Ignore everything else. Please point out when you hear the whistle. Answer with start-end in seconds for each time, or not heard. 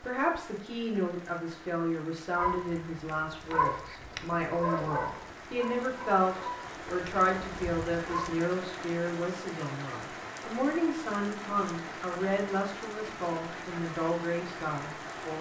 not heard.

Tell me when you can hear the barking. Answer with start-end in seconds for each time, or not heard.
2.4-8.3.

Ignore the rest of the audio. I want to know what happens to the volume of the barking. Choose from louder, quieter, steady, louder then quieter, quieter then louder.
quieter.